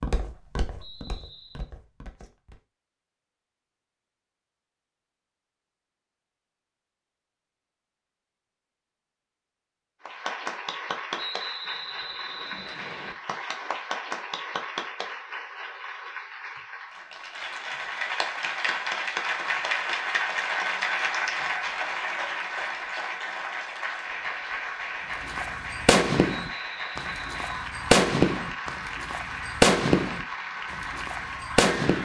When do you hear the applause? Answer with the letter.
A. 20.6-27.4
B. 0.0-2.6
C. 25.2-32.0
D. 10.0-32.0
D.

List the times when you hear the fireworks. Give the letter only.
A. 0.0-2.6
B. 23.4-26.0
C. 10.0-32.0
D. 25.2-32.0
D.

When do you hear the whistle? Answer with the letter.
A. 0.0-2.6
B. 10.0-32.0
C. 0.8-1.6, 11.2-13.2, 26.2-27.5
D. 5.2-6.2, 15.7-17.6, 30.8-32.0
C.